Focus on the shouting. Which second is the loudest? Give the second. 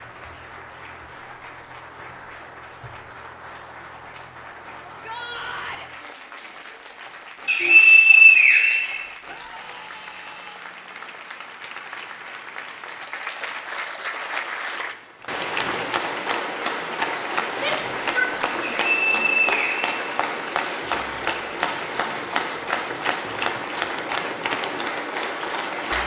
18 s.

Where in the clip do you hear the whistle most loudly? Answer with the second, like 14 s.
8 s.